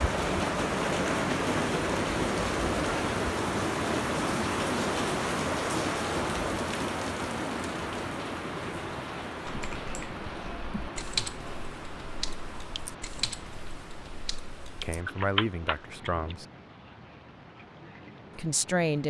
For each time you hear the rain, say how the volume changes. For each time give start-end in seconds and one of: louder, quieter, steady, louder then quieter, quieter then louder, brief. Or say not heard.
0.0-19.0 quieter.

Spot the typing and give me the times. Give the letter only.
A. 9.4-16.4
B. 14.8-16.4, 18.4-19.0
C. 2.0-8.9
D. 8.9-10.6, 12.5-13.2
A.